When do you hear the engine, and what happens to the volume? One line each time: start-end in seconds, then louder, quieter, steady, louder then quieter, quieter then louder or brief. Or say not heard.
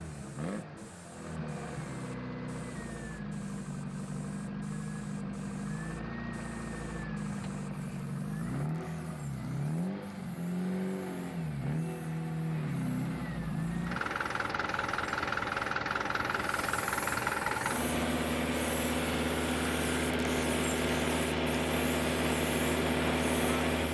0.0-23.8 louder.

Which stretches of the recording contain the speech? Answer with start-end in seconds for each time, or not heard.
not heard.